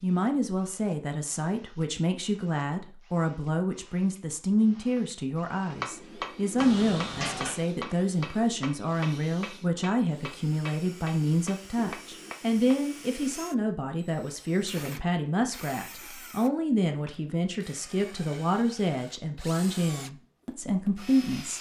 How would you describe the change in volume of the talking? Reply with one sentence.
The volume of the talking stays about the same.